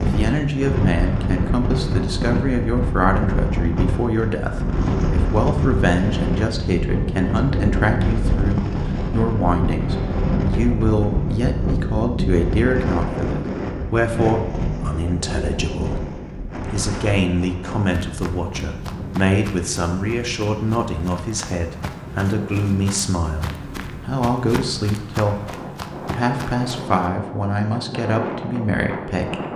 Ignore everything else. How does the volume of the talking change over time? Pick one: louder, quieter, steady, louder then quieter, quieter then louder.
steady.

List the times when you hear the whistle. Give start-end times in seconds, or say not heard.
not heard.